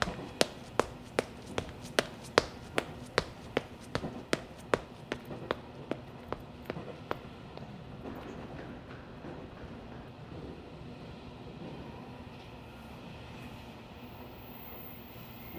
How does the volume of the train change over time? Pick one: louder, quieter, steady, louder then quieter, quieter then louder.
steady.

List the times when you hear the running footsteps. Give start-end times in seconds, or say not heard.
0.0-10.2.